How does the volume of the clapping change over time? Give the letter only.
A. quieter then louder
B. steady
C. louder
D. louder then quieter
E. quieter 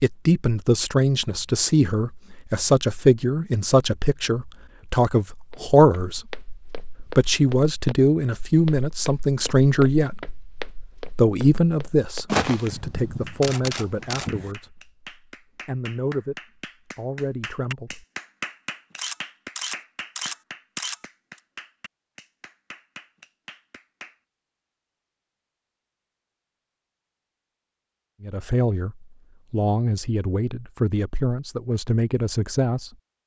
D.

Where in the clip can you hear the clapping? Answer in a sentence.
You can hear the clapping from 13.2 to 24.1 s.